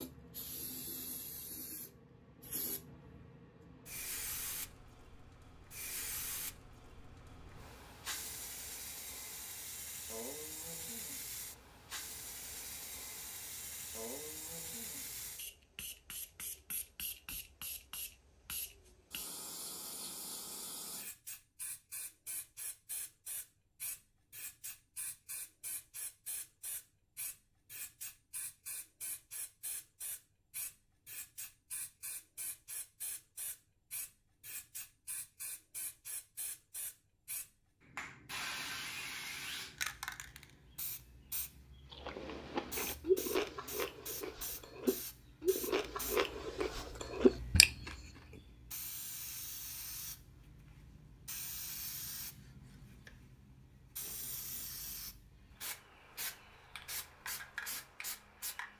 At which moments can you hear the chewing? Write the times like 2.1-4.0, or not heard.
42.0-48.0.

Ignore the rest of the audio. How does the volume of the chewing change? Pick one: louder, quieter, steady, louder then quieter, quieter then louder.
quieter then louder.